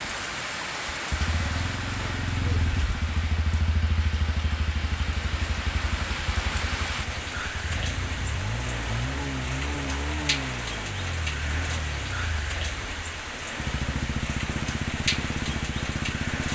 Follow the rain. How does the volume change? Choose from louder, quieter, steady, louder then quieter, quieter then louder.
steady.